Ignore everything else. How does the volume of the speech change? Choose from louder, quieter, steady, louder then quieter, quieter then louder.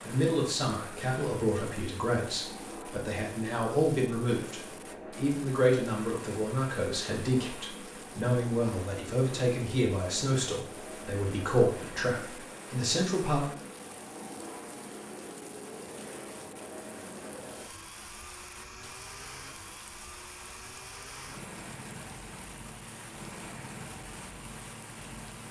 steady.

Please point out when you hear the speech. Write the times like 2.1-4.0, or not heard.
0.0-13.4.